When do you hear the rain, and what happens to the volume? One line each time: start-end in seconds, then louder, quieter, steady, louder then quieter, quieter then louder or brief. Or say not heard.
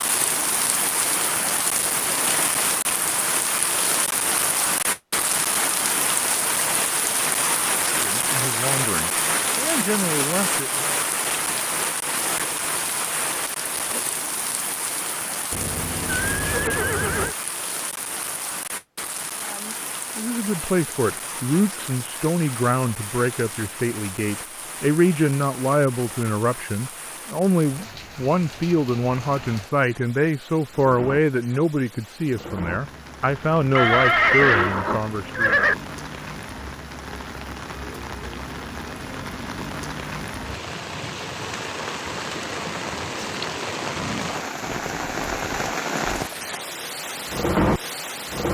0.0-48.5 quieter then louder.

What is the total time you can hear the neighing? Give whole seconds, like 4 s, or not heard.
4 s.